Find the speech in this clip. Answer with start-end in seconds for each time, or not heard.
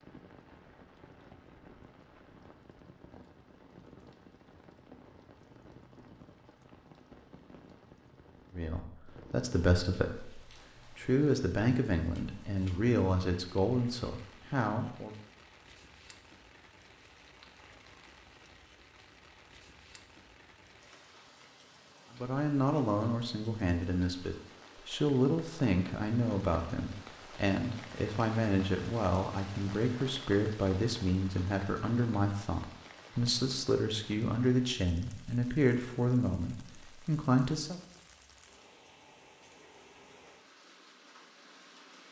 8.5-15.1, 22.1-37.8.